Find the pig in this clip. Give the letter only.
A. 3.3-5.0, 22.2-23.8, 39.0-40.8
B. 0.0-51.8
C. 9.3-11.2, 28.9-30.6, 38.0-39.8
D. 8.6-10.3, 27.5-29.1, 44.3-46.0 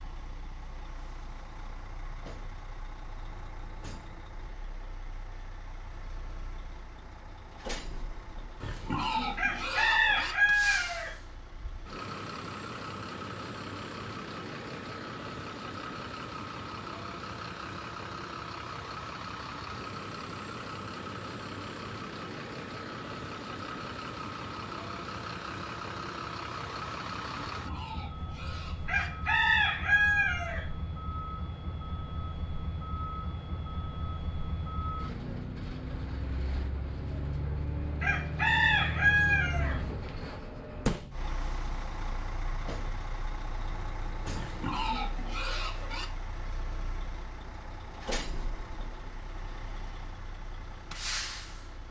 D.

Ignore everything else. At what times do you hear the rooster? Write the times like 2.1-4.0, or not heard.
9.3-11.2, 28.9-30.6, 38.0-39.8.